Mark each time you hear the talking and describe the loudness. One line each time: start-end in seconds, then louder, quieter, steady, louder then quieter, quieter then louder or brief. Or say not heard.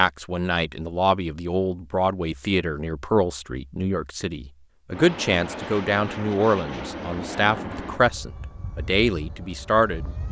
0.0-10.2 steady.